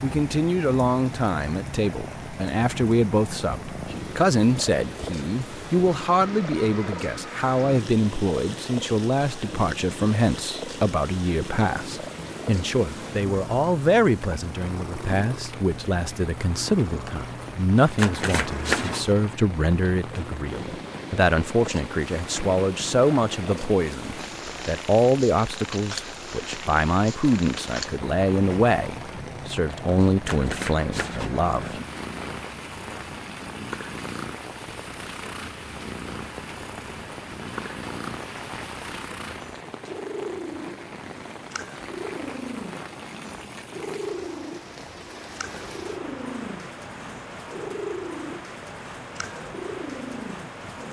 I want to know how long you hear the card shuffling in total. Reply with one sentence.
The card shuffling can be heard for 3 seconds in total.